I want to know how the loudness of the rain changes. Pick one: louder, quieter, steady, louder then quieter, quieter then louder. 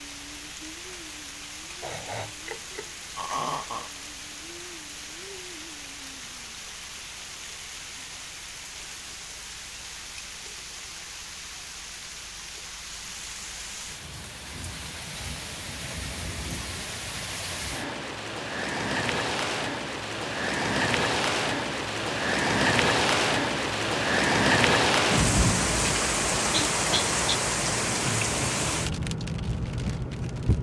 louder.